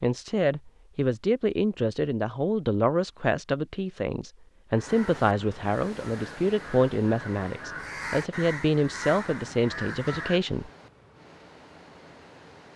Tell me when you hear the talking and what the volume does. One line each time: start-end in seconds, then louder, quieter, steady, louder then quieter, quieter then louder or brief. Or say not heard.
0.0-10.7 steady.